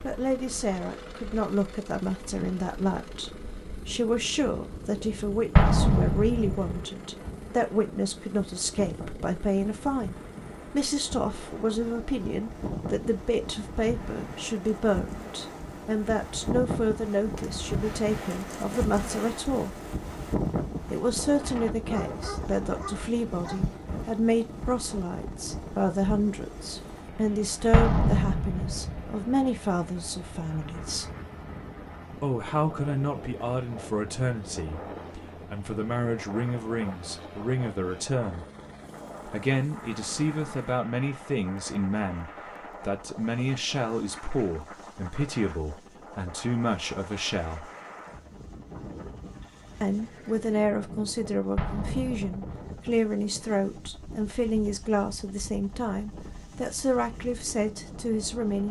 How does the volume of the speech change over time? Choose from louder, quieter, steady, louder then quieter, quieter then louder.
steady.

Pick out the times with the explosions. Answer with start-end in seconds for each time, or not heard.
5.5-6.8, 27.7-29.1, 51.5-52.7.